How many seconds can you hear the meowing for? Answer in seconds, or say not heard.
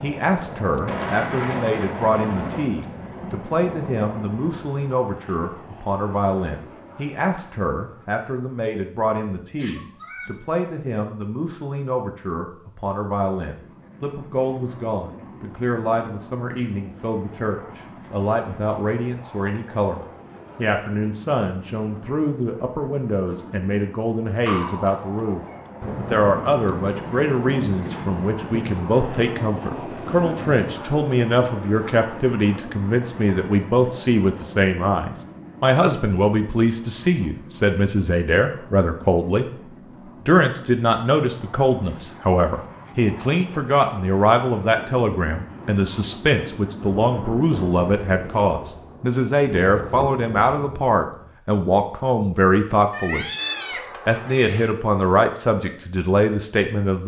4 s.